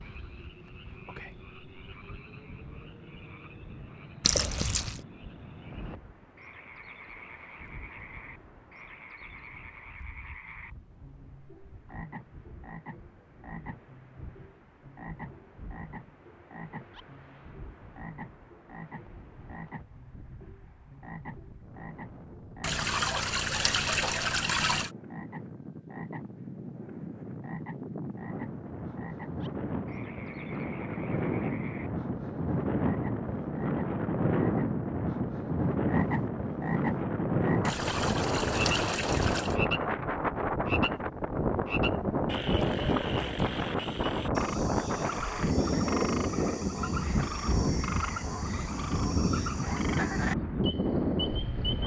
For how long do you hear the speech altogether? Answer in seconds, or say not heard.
not heard.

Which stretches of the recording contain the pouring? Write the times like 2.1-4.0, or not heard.
4.2-5.0, 22.6-24.9, 37.6-39.6.